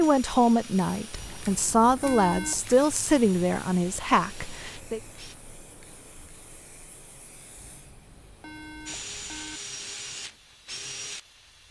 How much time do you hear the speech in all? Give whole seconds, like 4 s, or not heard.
5 s.